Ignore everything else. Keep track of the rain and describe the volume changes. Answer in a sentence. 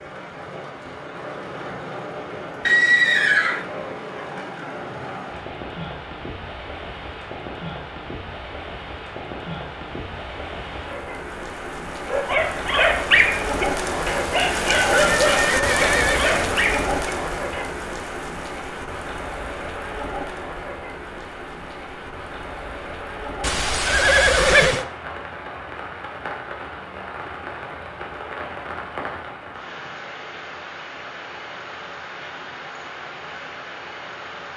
The volume of the rain goes up, then down.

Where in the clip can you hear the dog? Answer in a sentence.
The dog can be heard from 12.1 to 17.6 s.